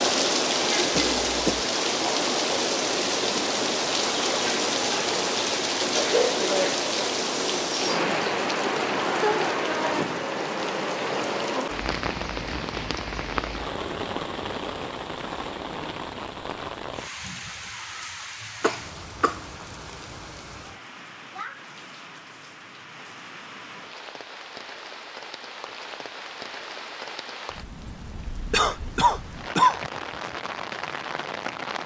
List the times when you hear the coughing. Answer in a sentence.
You can hear the coughing from 0.9 to 1.6 s, from 18.6 to 19.4 s and from 28.5 to 29.8 s.